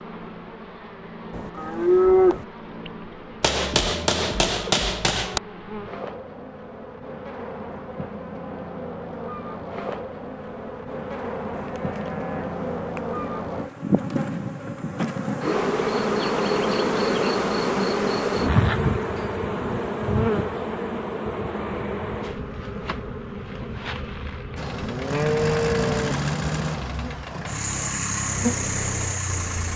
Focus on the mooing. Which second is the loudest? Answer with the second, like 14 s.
2 s.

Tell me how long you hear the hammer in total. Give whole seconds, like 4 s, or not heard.
2 s.